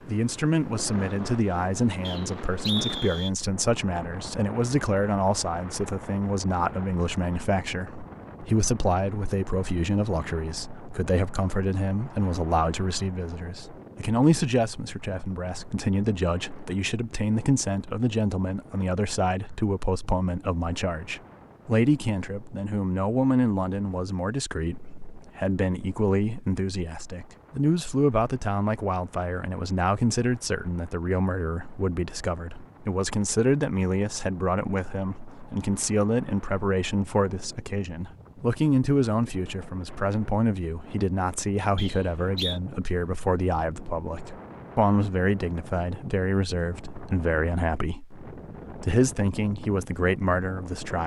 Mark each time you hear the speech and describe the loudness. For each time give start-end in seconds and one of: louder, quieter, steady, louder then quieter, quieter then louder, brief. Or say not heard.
0.1-51.0 steady.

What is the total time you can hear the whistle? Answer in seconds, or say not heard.
2 s.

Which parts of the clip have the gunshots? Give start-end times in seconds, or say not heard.
not heard.